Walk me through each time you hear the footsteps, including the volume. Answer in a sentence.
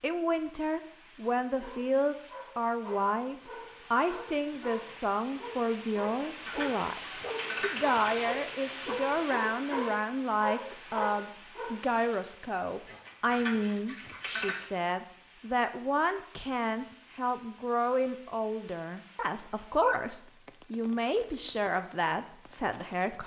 You can't hear the footsteps here.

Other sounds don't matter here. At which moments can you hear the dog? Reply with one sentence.
The dog can be heard from 1.4 to 11.8 s.